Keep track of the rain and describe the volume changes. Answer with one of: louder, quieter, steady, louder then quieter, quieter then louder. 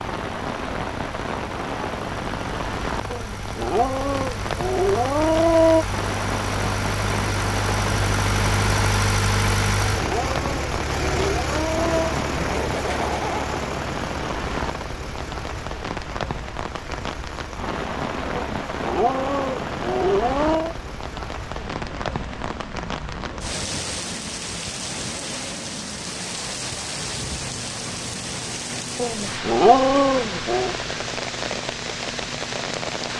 steady.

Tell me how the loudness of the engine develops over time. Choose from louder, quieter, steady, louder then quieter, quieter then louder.
louder then quieter.